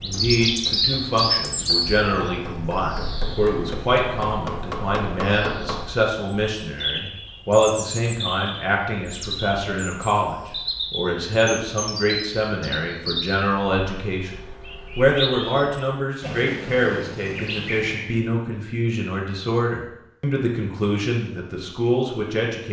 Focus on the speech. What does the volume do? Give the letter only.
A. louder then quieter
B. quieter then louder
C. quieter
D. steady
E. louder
D.